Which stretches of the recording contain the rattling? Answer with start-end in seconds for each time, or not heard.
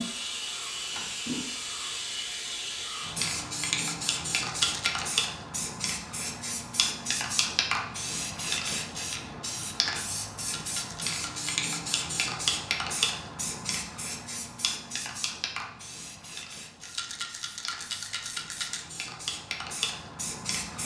4.5-5.1, 10.3-11.5, 16.8-18.8.